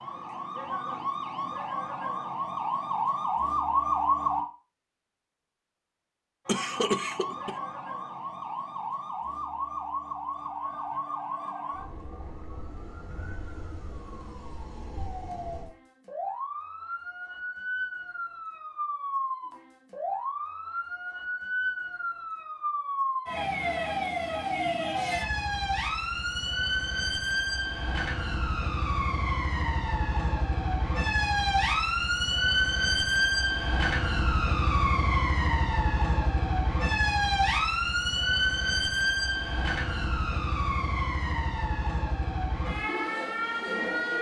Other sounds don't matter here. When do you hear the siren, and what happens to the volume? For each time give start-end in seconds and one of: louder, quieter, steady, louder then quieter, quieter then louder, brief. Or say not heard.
0.0-4.5 louder
6.5-44.1 louder.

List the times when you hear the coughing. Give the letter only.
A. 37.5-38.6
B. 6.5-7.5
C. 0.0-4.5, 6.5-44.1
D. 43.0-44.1
B.